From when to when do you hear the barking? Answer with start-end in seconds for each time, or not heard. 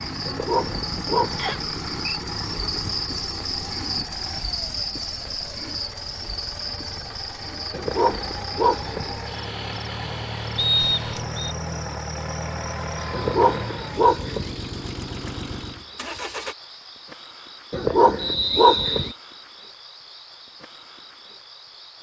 0.2-1.6, 7.7-9.2, 13.1-14.5, 17.7-19.1.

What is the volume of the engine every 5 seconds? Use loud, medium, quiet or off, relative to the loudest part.
loud, medium, loud, loud, off.